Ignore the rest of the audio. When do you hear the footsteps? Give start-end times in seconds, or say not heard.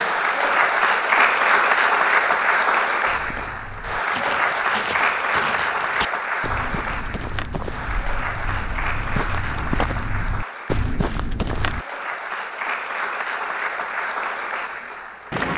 3.0-11.8.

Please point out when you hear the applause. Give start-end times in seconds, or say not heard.
0.0-15.5.